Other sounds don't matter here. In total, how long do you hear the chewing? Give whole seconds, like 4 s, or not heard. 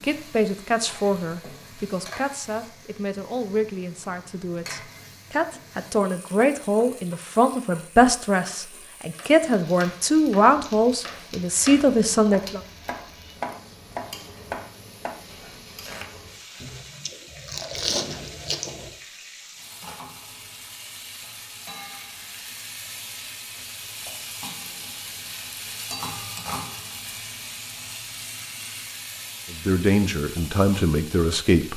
2 s.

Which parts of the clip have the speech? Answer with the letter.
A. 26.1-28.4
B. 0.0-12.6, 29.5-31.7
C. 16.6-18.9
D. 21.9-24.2
B.